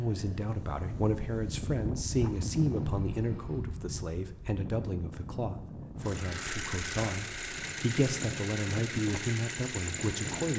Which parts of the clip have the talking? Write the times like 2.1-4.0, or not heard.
0.0-10.5.